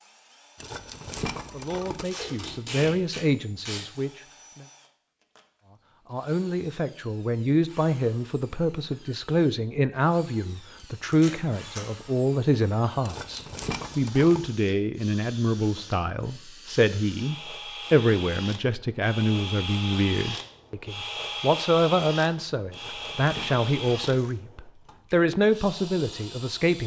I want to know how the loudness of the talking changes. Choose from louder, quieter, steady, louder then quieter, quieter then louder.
steady.